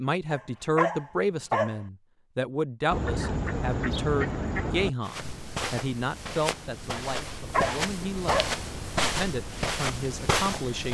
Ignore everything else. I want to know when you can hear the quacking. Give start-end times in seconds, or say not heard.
2.9-4.9.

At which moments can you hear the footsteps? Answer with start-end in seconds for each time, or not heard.
5.0-10.9.